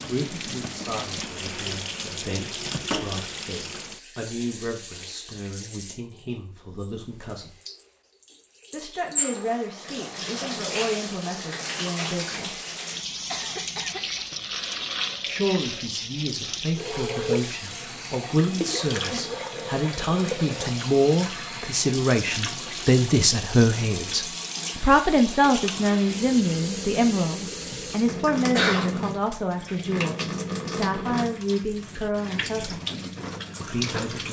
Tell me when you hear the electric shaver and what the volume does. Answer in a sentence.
The electric shaver can't be heard in this clip.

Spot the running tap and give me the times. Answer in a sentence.
You can hear the running tap from 0.0 to 34.2 s.